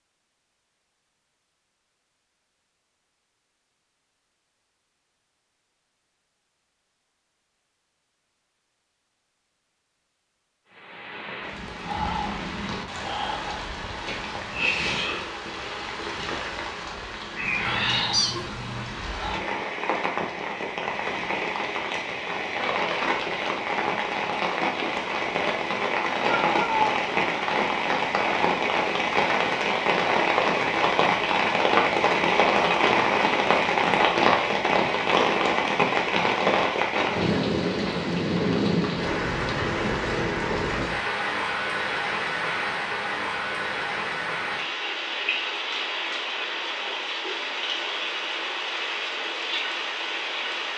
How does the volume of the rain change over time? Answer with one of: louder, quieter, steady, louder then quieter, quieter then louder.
louder then quieter.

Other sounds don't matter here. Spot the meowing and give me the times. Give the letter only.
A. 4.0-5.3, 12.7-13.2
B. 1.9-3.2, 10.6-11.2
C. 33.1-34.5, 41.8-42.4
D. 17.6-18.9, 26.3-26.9
D.